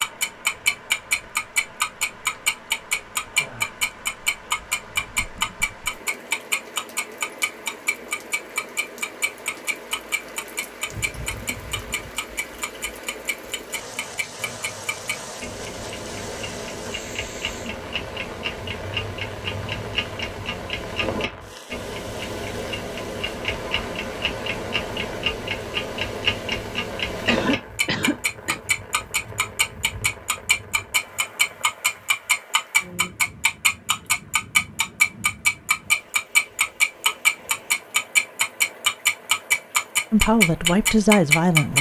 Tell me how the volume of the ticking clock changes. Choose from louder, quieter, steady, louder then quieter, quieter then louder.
quieter then louder.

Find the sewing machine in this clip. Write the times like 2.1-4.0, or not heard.
not heard.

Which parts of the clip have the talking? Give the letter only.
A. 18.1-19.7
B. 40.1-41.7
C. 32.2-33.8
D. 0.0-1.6
B.